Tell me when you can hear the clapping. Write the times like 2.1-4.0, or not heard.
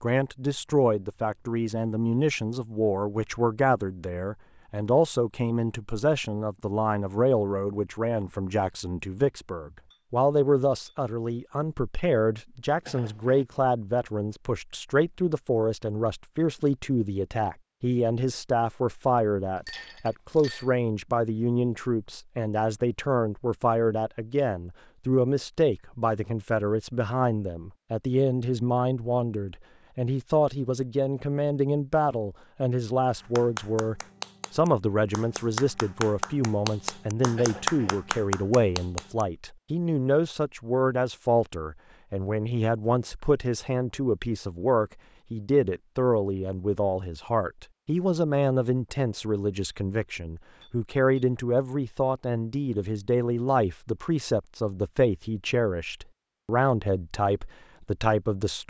33.1-39.2.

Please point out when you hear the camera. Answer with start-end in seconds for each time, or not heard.
not heard.